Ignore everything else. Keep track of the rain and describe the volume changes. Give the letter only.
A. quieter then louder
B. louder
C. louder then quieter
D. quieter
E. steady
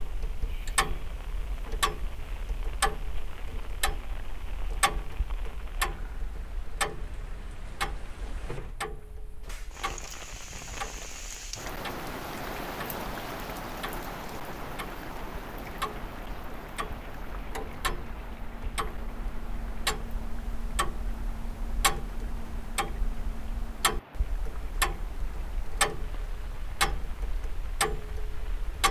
C.